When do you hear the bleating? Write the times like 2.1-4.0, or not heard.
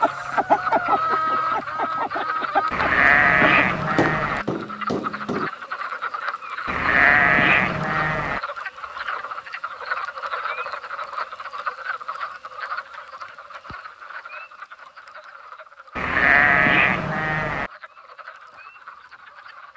2.7-4.5, 6.7-8.4, 15.9-17.7.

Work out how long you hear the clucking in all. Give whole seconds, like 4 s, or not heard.
4 s.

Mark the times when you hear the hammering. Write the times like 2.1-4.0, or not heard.
4.0-5.5.